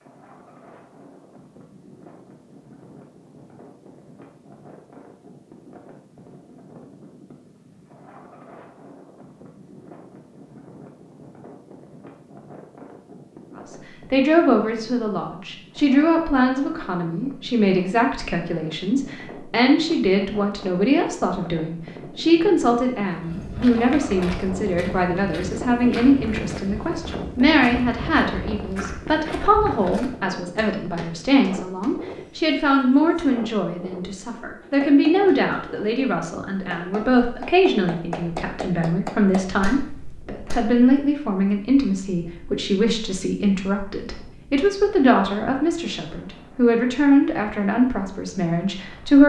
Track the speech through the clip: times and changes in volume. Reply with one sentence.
You can hear the speech from 13.7 to 49.2 s, at a steady volume.